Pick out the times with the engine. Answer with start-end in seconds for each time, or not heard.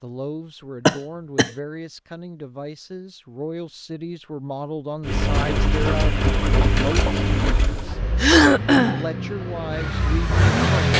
5.0-10.9.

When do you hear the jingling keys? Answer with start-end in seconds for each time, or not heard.
not heard.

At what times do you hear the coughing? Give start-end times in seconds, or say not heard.
0.8-1.5, 8.2-9.1.